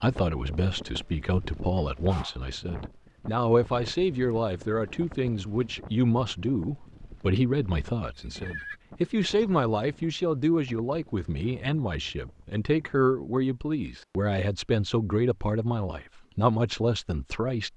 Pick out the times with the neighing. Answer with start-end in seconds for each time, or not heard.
8.2-8.8.